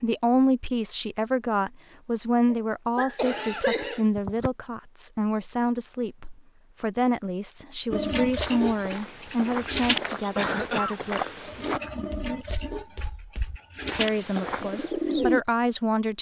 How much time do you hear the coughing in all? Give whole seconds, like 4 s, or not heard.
3 s.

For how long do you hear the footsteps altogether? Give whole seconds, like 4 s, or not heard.
7 s.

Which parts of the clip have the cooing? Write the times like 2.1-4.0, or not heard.
7.9-15.4.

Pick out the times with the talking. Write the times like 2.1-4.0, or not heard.
0.0-11.5, 13.9-16.1.